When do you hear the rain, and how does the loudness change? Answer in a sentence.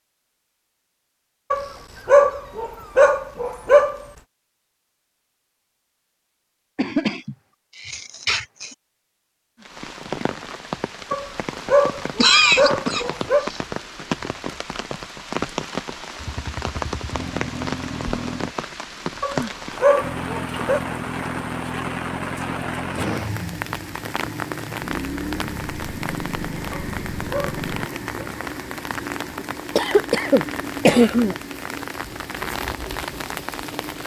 You can hear the rain from 9.6 to 34.0 s, at a steady volume.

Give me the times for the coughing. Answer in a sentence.
You can hear the coughing from 6.8 to 8.8 s, from 12.2 to 13.6 s and from 29.8 to 31.4 s.